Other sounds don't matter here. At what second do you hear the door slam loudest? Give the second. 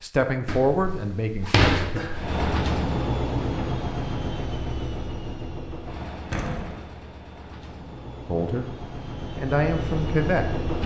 2 s.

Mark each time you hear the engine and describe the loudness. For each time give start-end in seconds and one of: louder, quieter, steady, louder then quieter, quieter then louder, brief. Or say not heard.
2.1-10.8 quieter then louder.